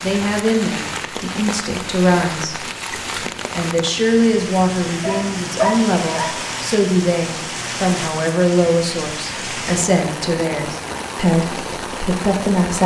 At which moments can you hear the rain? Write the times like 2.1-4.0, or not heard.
0.0-12.8.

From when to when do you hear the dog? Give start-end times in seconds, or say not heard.
5.0-6.4.